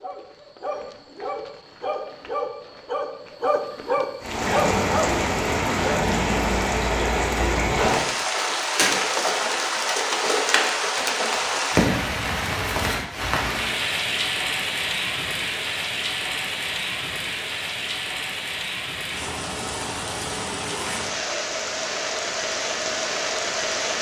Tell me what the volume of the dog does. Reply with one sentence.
The loudness of the dog goes up.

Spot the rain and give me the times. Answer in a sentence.
You can hear the rain from 4.2 to 23.9 s.